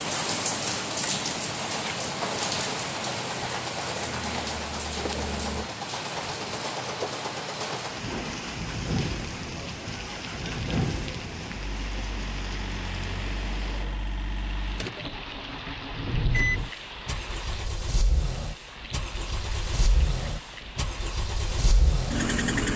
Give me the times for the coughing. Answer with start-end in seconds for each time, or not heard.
not heard.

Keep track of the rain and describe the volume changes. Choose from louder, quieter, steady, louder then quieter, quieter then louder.
quieter.